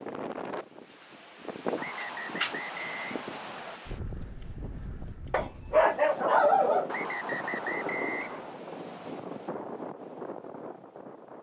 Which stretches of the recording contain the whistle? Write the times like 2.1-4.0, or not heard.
1.8-3.8, 6.8-8.6.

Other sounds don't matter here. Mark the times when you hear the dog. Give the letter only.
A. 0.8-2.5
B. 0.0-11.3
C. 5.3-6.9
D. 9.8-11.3
C.